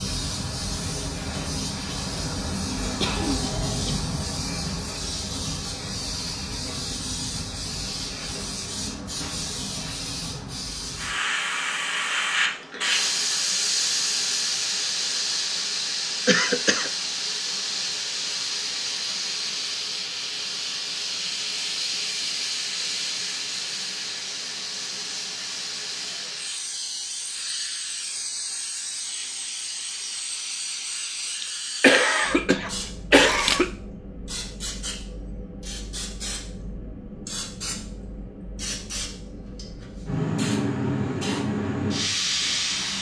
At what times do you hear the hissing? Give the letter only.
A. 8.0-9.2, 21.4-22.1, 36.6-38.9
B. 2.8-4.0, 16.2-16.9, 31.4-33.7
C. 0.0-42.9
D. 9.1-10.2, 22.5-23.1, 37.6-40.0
C.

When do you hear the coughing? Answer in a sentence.
You can hear the coughing from 2.8 to 4.0 s, from 16.2 to 16.9 s and from 31.4 to 33.7 s.